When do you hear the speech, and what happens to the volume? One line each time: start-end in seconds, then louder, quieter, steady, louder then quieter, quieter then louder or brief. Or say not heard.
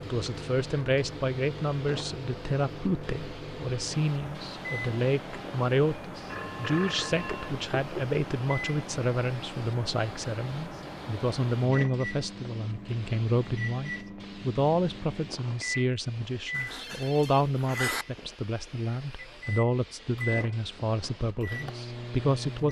0.0-22.6 steady.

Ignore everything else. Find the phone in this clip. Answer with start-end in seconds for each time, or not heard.
6.2-8.2, 16.5-18.1.